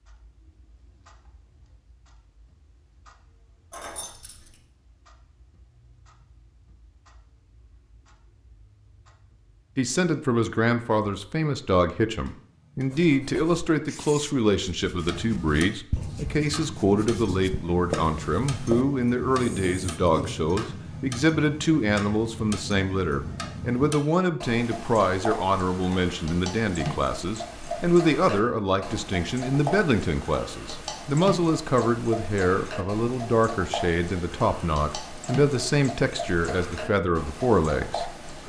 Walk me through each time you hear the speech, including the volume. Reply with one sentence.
The speech can be heard from 9.8 to 38.4 s, at a steady volume.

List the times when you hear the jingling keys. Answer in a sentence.
You can hear the jingling keys from 3.7 to 4.6 s.